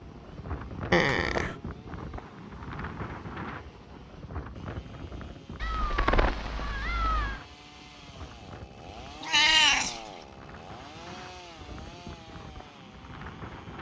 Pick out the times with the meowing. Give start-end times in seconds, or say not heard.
0.9-1.6, 5.6-7.4, 9.2-10.1.